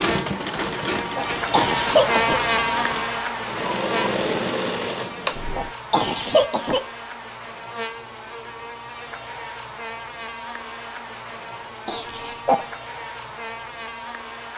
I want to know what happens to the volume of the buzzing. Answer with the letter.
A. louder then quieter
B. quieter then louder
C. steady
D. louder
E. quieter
E.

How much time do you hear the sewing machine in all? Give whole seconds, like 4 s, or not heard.
6 s.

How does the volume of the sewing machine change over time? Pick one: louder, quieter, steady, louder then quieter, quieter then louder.
quieter then louder.